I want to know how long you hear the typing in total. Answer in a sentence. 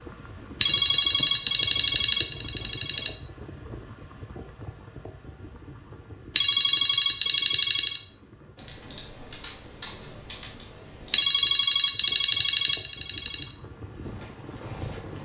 The typing can be heard for 3 seconds in total.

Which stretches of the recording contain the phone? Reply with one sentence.
You can hear the phone from 0.6 to 3.1 s, from 6.3 to 8.0 s and from 11.1 to 13.5 s.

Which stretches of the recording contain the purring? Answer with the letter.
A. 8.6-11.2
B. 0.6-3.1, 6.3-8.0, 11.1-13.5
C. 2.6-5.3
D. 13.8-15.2
D.